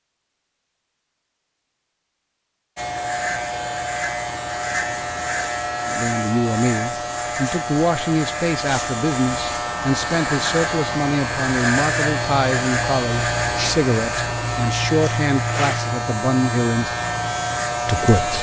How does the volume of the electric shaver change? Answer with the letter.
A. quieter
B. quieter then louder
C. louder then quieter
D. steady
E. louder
D.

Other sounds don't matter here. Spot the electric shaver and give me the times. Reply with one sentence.
You can hear the electric shaver from 2.8 to 18.3 s.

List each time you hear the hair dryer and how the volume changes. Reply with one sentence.
You can't hear the hair dryer here.